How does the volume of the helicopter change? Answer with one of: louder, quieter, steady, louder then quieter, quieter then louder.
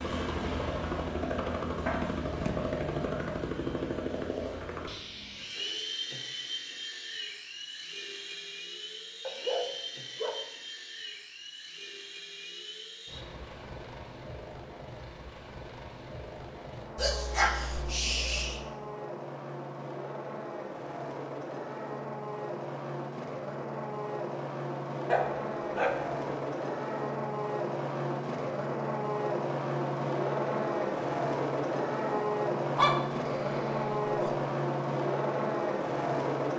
quieter then louder.